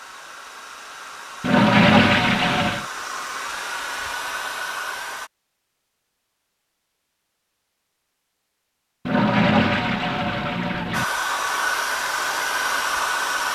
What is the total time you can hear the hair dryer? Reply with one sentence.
You can hear the hair dryer for 8 seconds altogether.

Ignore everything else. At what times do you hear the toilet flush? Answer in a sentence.
You can hear the toilet flush from 1.4 to 2.9 s and from 9.1 to 11.1 s.